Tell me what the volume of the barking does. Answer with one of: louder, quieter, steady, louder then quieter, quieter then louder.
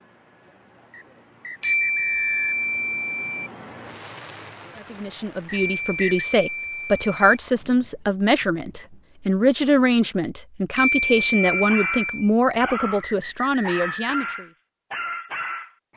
steady.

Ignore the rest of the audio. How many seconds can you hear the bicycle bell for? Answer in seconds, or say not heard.
5 s.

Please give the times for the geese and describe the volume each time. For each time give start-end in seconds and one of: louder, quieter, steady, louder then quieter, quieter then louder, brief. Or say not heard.
not heard.